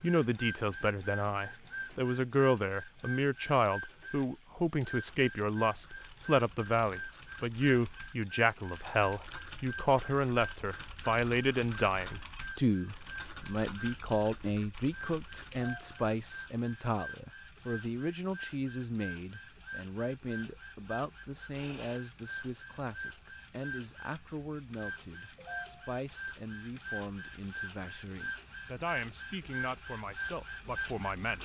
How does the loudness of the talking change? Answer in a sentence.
The loudness of the talking goes down.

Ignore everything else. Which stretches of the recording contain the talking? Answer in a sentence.
You can hear the talking from 0.0 to 31.3 s.